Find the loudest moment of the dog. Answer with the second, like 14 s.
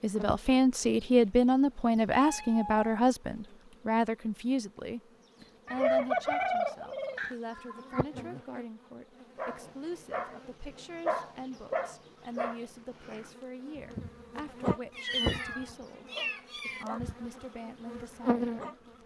11 s.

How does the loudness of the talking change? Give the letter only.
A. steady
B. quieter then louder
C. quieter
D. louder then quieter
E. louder
C.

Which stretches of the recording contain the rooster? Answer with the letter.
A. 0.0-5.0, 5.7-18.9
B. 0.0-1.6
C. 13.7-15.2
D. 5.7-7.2
D.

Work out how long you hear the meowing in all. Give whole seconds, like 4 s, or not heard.
4 s.